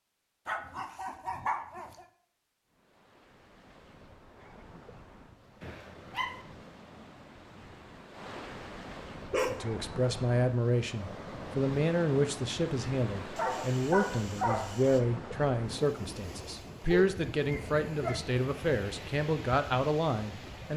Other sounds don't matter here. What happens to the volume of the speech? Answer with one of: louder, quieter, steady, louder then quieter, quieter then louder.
steady.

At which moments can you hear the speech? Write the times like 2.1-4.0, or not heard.
9.5-20.7.